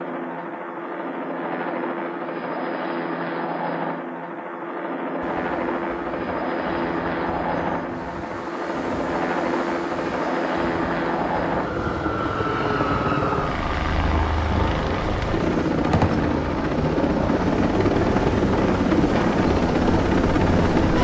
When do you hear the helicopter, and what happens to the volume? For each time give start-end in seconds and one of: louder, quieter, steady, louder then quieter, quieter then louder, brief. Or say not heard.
0.0-20.9 louder.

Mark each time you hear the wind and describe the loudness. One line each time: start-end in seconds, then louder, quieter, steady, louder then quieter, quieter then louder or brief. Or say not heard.
5.2-20.8 louder.